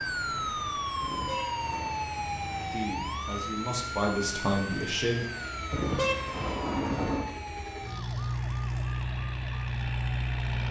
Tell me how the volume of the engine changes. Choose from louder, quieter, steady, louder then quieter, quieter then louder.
louder.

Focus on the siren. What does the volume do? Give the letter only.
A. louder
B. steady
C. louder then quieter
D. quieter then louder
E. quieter
E.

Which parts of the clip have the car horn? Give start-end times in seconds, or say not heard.
1.0-1.9, 5.7-7.3.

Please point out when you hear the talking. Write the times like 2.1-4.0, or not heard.
2.6-5.2.